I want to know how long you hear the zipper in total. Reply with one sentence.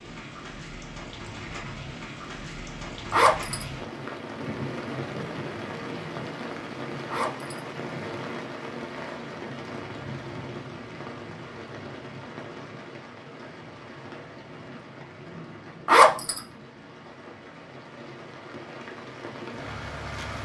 You can hear the zipper for 2 seconds altogether.